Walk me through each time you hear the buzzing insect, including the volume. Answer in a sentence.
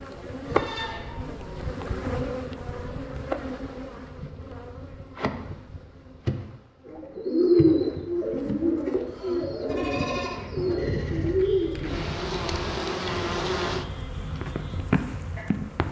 You can hear the buzzing insect from 0.0 to 15.8 s, getting quieter then louder.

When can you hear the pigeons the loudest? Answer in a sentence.
The loudest moment of the pigeons is at 8 seconds.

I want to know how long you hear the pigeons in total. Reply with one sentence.
The pigeons can be heard for 5 seconds in total.